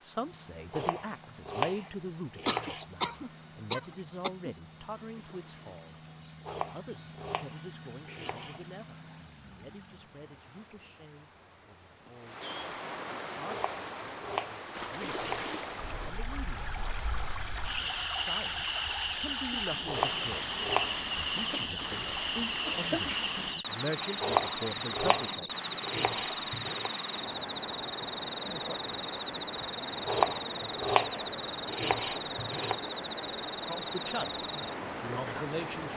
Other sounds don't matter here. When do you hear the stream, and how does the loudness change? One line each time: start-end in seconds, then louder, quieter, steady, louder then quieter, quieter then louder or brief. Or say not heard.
0.0-35.9 louder.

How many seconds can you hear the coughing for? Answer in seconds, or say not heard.
3 s.